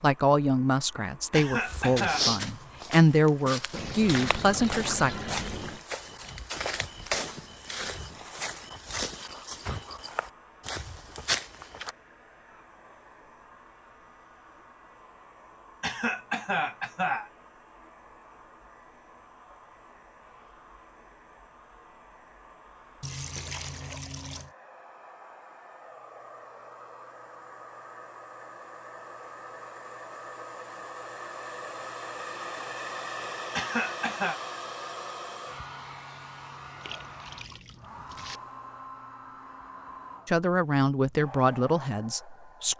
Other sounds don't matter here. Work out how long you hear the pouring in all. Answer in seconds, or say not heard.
5 s.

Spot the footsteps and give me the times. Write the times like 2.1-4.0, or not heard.
1.6-11.9.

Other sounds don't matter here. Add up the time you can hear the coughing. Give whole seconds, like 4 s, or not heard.
3 s.